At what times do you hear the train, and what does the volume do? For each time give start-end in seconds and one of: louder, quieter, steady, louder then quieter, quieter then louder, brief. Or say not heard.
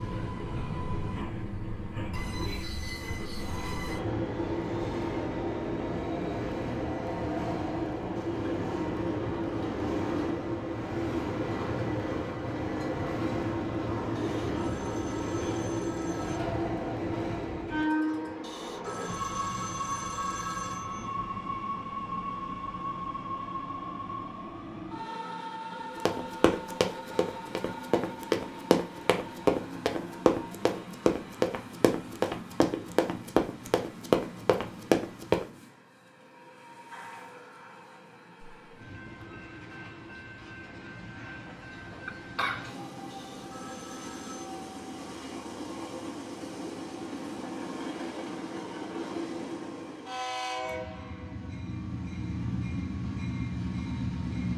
0.0-54.5 quieter then louder.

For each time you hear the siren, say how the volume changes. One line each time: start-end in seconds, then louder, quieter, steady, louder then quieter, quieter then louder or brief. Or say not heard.
not heard.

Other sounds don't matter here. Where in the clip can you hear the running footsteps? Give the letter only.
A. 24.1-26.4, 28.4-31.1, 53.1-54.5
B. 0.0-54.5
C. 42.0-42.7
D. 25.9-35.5
D.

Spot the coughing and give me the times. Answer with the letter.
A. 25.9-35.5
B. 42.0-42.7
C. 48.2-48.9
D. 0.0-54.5
B.